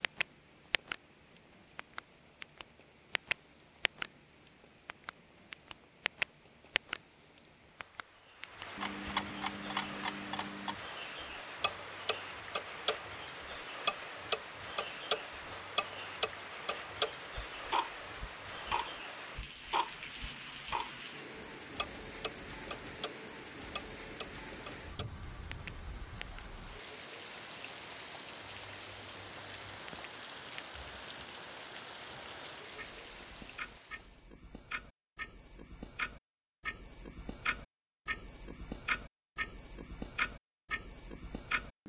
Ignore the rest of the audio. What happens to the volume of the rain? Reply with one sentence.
The volume of the rain goes up.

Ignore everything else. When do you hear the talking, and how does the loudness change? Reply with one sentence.
The talking can't be heard in this clip.